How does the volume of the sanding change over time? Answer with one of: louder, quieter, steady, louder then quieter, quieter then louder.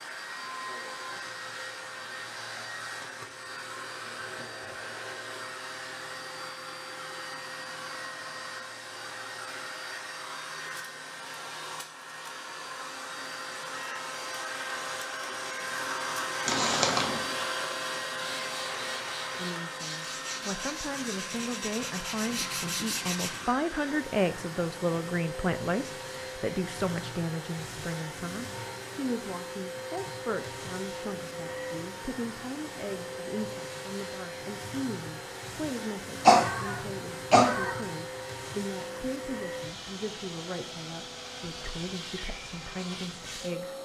louder.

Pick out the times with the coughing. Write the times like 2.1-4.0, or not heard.
16.4-17.2, 36.2-37.8.